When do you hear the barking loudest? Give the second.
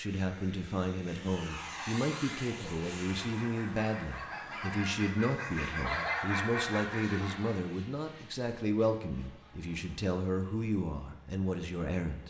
6 s.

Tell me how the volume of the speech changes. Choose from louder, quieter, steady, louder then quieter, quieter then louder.
steady.